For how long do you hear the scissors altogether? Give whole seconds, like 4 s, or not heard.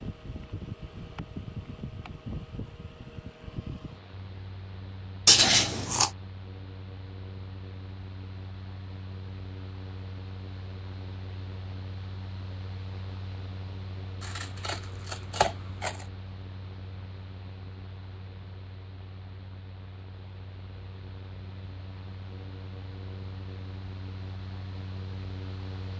3 s.